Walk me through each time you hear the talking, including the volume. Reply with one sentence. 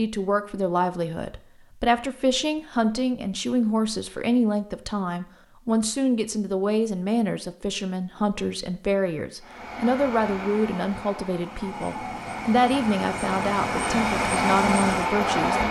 You can hear the talking from 0.0 to 15.6 s, at a steady volume.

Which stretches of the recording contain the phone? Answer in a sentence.
The phone can't be heard in this clip.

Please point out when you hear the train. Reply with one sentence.
The train can be heard from 9.4 to 15.6 s.